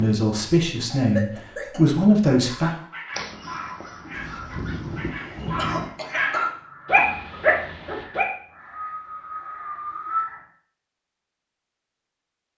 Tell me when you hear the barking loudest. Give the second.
7 s.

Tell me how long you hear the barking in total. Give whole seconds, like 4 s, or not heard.
6 s.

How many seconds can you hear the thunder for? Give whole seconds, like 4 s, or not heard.
2 s.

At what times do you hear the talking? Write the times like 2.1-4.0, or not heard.
0.0-2.7.